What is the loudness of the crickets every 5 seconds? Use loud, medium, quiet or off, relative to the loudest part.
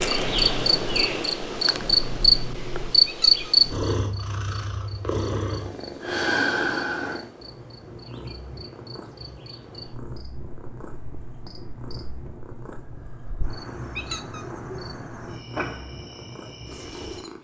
loud, quiet, quiet, quiet.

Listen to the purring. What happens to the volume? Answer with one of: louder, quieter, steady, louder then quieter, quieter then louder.
louder then quieter.